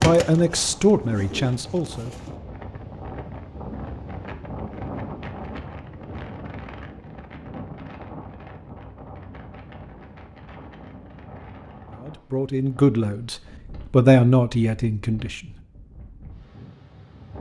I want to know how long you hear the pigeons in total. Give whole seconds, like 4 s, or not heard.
2 s.